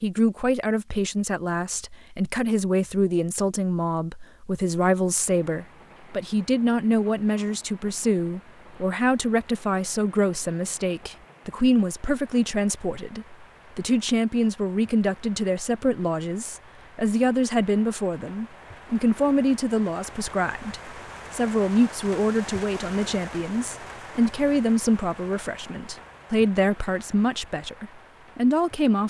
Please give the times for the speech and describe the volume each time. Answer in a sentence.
You can hear the speech from 0.0 to 29.0 s, at a steady volume.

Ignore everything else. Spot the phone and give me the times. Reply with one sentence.
The phone can't be heard in this clip.